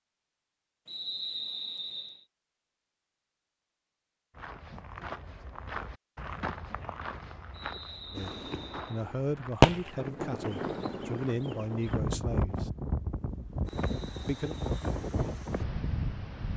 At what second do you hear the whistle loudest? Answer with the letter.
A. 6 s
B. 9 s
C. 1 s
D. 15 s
C.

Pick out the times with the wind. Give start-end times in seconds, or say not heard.
7.8-16.5.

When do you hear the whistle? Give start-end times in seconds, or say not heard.
0.8-2.2, 7.5-9.1, 13.7-14.9.